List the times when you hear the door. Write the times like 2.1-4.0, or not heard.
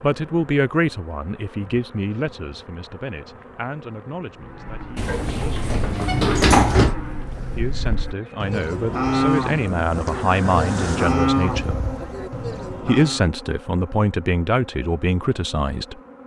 5.0-7.0.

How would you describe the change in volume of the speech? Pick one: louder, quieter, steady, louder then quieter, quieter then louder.
quieter then louder.